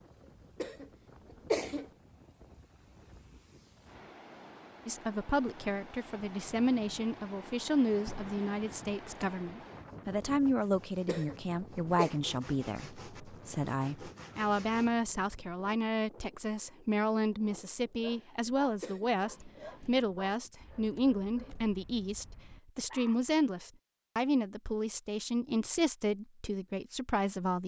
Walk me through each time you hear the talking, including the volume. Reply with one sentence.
The talking can be heard from 4.8 to 27.6 s, at a steady volume.